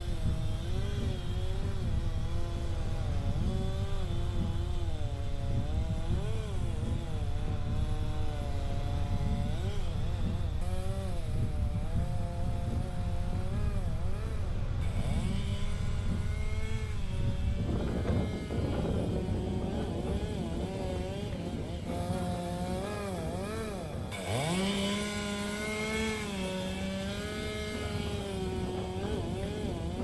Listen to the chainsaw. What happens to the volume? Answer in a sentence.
The volume of the chainsaw goes up.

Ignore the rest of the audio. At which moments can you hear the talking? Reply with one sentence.
You can't hear the talking here.